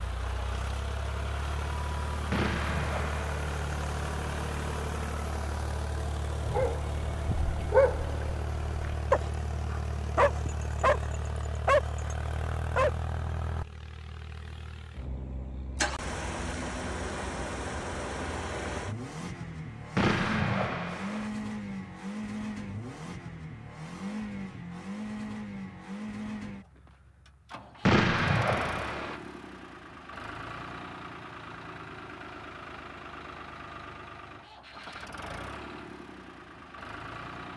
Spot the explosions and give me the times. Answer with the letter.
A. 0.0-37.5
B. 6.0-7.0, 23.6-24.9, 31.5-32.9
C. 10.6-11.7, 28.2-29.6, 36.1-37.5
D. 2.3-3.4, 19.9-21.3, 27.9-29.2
D.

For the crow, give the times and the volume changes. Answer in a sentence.
The crow can't be heard in this clip.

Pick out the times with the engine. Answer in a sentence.
You can hear the engine from 0.0 to 37.5 s.